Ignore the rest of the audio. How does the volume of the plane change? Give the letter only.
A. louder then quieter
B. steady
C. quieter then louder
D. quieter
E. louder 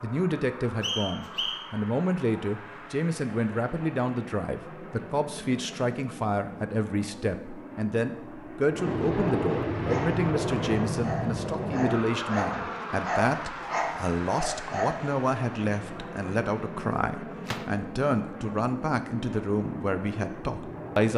A.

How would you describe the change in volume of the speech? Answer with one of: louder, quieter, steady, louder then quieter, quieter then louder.
steady.